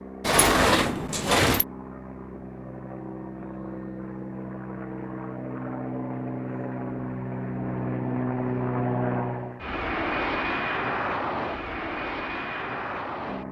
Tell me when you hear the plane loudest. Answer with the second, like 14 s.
9 s.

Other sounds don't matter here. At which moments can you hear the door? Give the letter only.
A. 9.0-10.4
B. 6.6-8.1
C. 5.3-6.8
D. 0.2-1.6
D.